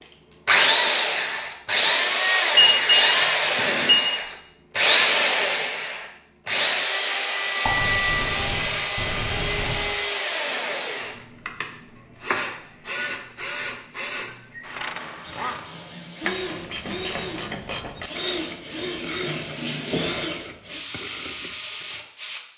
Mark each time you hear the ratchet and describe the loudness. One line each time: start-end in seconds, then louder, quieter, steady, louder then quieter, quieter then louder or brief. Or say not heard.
14.6-22.1 quieter.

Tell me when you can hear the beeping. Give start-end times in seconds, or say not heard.
2.5-4.2, 7.7-9.9, 19.2-20.2.